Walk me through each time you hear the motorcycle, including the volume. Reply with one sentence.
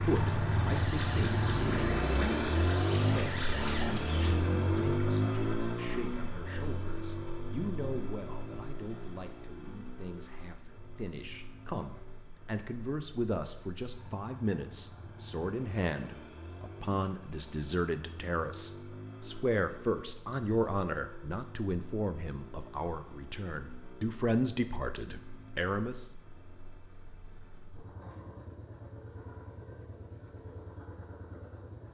The motorcycle can be heard from 0.0 to 31.8 s, getting quieter.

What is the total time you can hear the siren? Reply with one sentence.
The siren can be heard for 5 seconds in total.